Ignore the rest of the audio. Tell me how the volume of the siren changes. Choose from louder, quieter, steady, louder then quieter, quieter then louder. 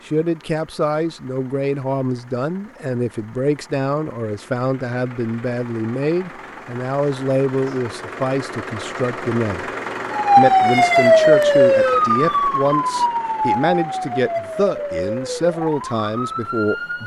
quieter.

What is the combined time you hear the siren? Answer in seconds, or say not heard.
7 s.